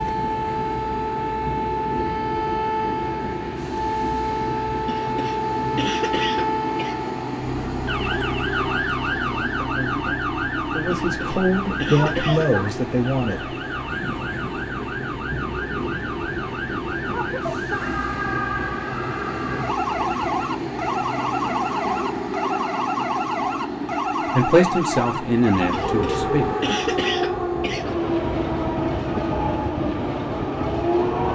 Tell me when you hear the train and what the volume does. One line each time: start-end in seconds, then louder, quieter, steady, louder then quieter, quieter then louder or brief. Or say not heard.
0.0-31.3 steady.